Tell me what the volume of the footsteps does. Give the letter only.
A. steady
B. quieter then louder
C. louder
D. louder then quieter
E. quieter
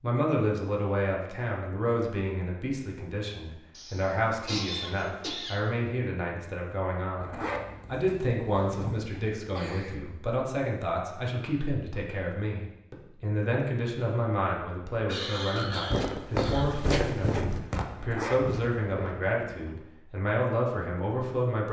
E.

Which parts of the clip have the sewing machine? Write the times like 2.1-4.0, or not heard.
not heard.